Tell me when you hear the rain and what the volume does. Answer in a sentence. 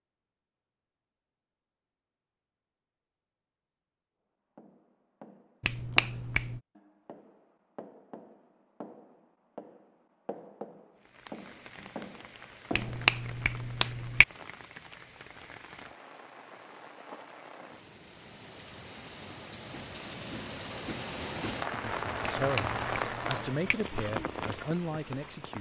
You can hear the rain from 10.9 to 25.5 s, getting louder.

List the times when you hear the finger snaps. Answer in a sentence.
You can hear the finger snaps from 5.6 to 6.6 s, from 12.7 to 14.2 s and from 22.4 to 23.8 s.